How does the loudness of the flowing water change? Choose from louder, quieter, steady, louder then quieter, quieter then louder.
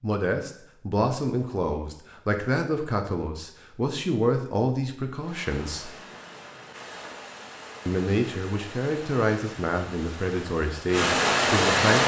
louder.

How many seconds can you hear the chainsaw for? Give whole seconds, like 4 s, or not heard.
not heard.